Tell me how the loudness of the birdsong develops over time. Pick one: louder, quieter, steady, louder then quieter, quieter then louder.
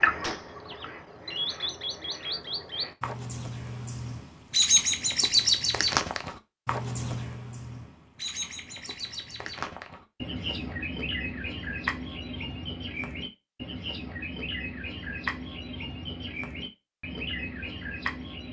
louder then quieter.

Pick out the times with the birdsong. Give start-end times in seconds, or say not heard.
0.0-18.4.